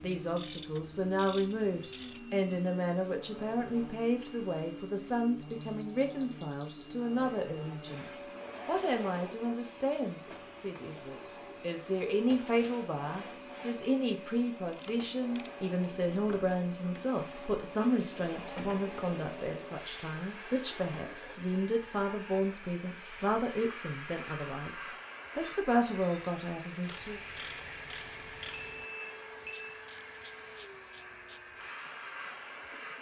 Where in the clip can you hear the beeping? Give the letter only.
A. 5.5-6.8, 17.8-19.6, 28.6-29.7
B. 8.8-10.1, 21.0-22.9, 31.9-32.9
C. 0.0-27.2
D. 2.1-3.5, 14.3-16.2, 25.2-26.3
A.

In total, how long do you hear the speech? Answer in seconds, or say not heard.
27 s.